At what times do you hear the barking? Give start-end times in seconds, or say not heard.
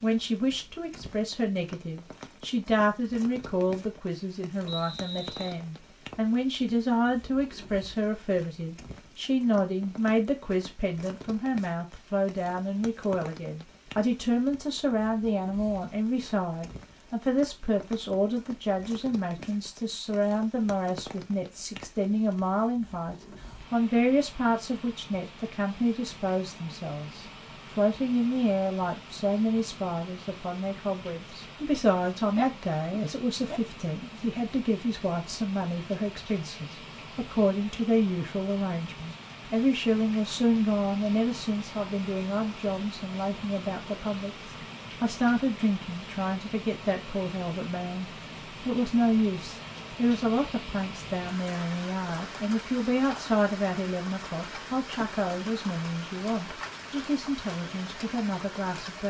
32.4-34.2.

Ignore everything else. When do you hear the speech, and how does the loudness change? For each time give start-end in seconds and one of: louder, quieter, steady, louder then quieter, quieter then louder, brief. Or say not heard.
0.0-59.0 steady.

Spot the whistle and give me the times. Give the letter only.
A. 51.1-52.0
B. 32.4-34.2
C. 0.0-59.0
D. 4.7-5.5
D.